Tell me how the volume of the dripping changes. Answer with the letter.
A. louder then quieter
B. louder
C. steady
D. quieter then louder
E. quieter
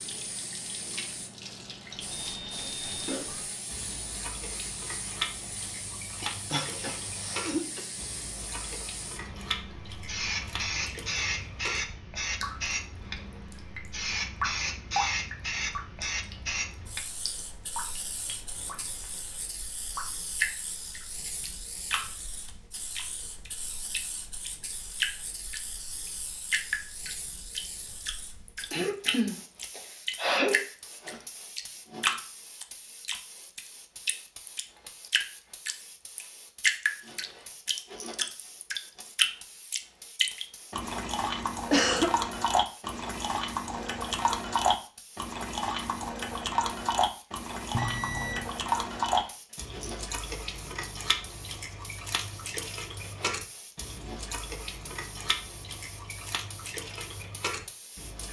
A.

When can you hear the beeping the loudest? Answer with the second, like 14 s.
48 s.